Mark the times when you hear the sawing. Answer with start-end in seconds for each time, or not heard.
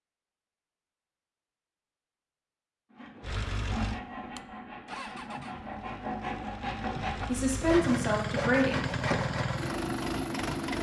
2.9-9.8.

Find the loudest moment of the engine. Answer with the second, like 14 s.
10 s.